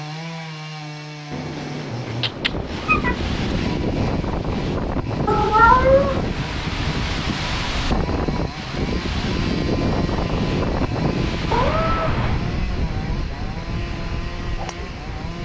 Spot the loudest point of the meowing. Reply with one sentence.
The loudest moment of the meowing is at 6 seconds.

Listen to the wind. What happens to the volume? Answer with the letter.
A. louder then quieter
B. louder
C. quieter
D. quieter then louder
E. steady
C.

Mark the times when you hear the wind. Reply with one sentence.
You can hear the wind from 2.4 to 15.4 s.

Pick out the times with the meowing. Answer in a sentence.
The meowing can be heard from 1.3 to 3.6 s, from 5.2 to 6.2 s and from 11.5 to 12.5 s.